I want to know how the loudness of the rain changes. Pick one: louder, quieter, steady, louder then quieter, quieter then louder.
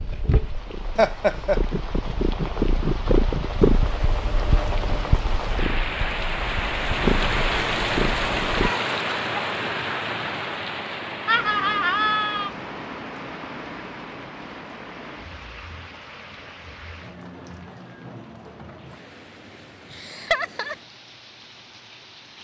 louder then quieter.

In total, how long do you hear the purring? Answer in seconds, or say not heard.
9 s.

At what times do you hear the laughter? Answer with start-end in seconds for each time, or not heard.
0.9-1.6, 11.2-12.5, 19.9-20.8.